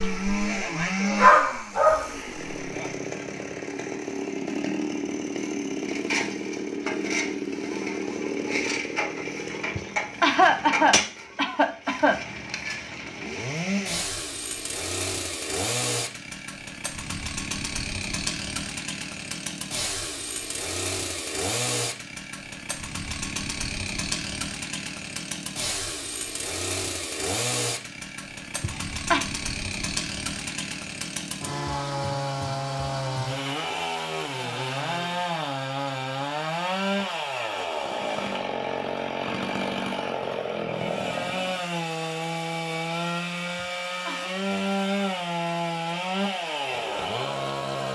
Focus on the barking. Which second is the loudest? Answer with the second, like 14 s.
1 s.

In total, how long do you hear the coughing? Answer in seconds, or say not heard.
4 s.